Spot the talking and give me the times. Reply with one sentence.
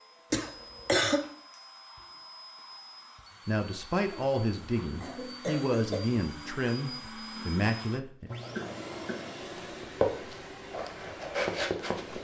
You can hear the talking from 3.5 to 8.3 s.